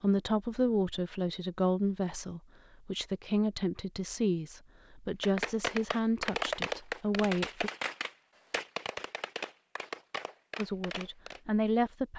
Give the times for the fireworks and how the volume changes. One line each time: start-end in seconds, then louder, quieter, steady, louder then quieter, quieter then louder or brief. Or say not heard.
5.2-11.4 quieter.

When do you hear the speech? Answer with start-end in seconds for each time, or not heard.
0.0-7.7, 10.6-12.1.